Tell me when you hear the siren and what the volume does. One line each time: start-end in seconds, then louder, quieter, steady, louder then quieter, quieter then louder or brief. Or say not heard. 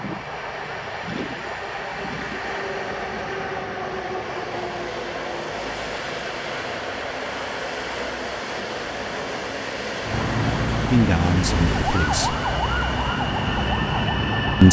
0.1-14.6 louder.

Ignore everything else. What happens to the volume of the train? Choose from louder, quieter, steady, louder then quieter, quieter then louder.
steady.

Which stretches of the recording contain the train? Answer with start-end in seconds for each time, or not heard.
0.0-14.6.